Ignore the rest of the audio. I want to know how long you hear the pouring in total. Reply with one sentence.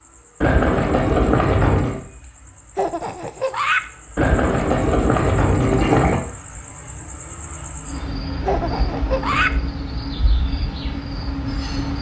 You can hear the pouring for 5 seconds altogether.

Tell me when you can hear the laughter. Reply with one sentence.
You can hear the laughter from 2.8 to 3.9 s and from 8.4 to 9.6 s.